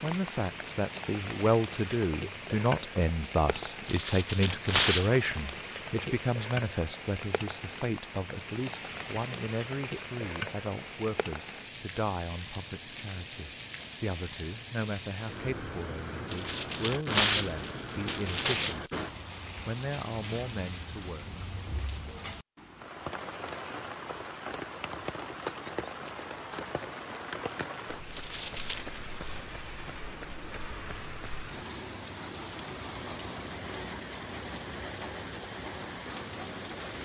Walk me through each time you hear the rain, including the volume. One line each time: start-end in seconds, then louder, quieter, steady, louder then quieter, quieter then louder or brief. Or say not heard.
0.0-36.9 steady.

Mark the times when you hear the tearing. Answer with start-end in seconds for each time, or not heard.
3.9-5.1, 16.3-18.8, 28.1-29.0.